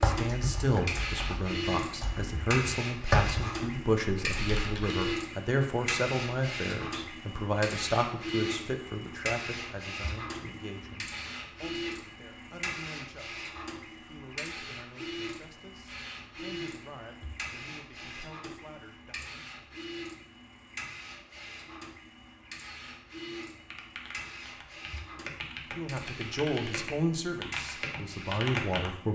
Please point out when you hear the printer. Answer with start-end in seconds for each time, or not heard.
0.0-29.0.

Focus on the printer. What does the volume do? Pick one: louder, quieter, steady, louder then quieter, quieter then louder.
quieter.